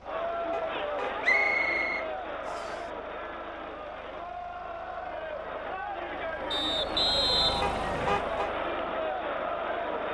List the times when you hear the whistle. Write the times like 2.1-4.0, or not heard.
1.2-2.9, 6.5-8.2.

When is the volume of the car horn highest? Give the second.
8 s.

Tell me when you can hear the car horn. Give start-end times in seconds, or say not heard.
0.5-1.9, 7.6-8.5.